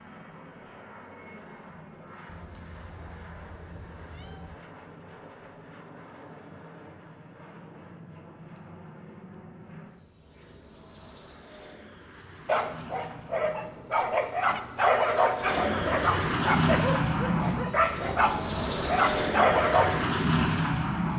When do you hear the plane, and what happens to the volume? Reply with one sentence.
The plane can be heard from 0.0 to 21.1 s, getting louder.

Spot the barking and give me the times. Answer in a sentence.
The barking can be heard from 12.4 to 20.0 s.